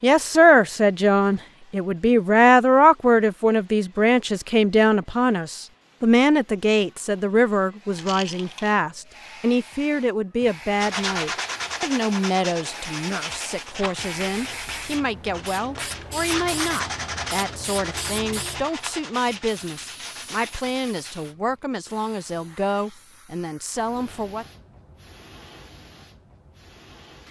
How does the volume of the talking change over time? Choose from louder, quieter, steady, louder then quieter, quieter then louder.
quieter.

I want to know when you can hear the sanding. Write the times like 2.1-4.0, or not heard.
10.7-21.4.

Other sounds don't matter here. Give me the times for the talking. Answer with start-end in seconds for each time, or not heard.
0.0-24.4.